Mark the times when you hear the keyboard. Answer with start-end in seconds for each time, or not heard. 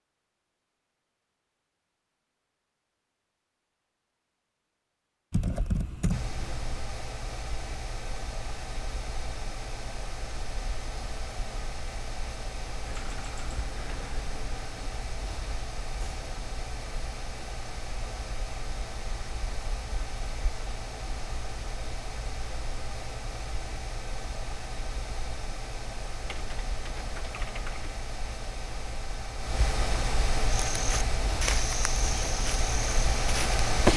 5.3-6.9, 12.8-14.9, 26.2-27.9.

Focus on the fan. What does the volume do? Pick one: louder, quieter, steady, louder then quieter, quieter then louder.
louder.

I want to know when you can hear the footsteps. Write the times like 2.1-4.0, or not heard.
30.5-33.6.